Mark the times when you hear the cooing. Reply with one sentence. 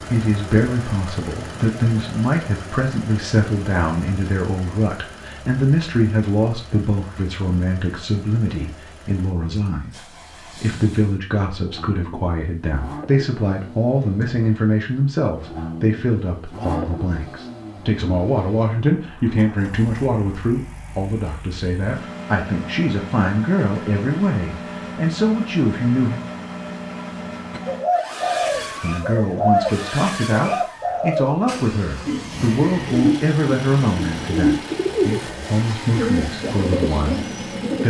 You can hear the cooing from 27.5 to 31.3 s and from 32.0 to 37.8 s.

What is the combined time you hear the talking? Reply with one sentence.
The talking can be heard for 35 seconds in total.